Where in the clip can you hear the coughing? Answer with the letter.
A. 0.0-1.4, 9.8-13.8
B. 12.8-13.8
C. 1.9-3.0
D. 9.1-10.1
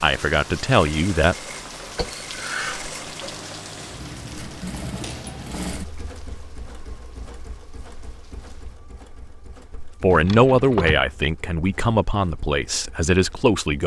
C.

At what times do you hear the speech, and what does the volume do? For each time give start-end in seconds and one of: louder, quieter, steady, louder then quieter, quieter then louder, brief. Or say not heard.
0.0-1.4 brief
9.8-13.8 quieter.